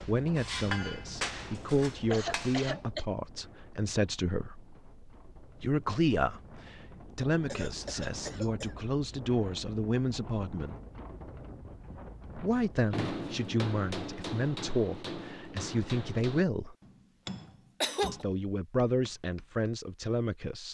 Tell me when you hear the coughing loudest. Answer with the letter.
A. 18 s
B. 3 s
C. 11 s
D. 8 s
A.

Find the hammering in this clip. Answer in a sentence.
You can hear the hammering from 0.0 to 2.8 s and from 12.9 to 19.7 s.